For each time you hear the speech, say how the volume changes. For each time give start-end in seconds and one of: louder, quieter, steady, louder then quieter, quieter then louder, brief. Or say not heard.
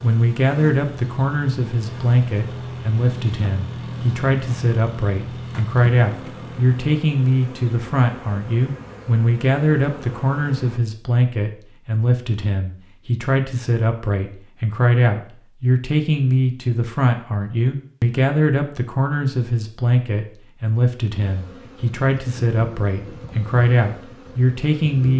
0.0-25.1 steady.